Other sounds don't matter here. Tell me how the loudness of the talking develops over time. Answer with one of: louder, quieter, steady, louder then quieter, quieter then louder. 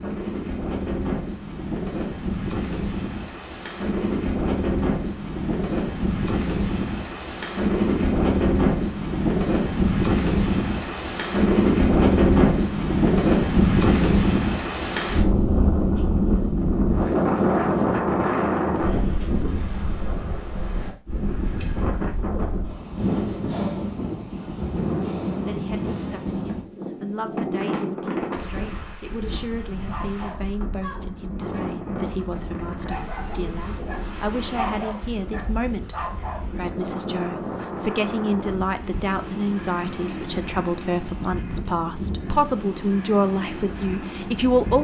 louder.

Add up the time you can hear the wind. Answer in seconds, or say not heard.
45 s.